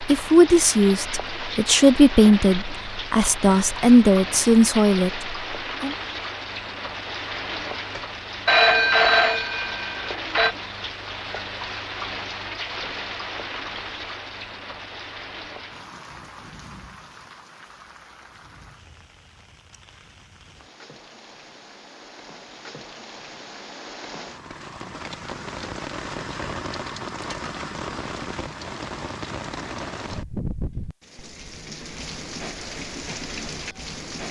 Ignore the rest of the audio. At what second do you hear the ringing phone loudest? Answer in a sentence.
The volume of the ringing phone peaks at 9 seconds.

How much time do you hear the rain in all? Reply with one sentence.
You can hear the rain for 34 seconds altogether.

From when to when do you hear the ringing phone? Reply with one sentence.
The ringing phone can be heard from 8.4 to 10.6 s.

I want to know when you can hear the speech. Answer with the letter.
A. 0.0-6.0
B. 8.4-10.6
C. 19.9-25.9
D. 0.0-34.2
A.